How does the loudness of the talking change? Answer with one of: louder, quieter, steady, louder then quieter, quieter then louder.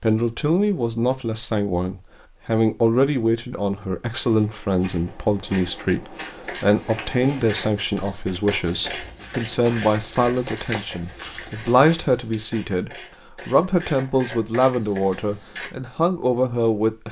steady.